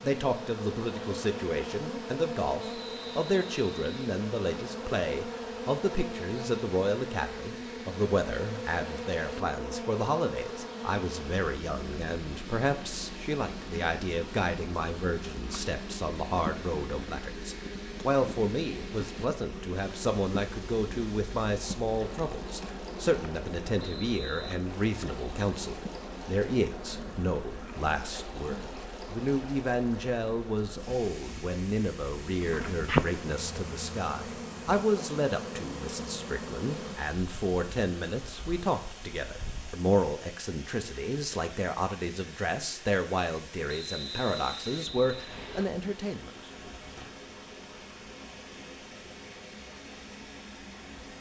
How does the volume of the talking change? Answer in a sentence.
The volume of the talking stays about the same.